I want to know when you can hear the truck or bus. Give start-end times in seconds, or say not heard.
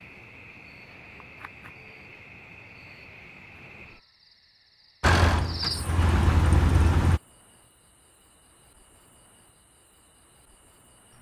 5.0-7.2.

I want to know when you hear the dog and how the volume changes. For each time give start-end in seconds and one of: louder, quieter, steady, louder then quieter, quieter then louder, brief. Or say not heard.
not heard.